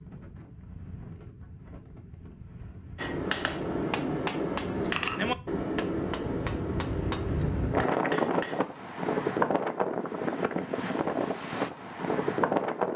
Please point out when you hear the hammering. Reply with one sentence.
You can hear the hammering from 3.0 to 8.7 s.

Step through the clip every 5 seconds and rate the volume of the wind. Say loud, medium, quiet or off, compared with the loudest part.
quiet, loud, loud.